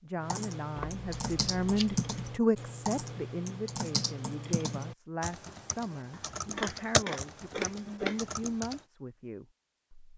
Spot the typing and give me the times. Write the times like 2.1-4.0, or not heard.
0.2-8.8.